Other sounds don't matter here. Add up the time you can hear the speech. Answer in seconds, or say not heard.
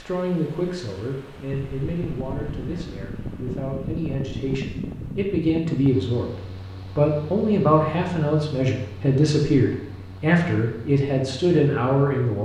12 s.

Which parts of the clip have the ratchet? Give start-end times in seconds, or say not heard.
not heard.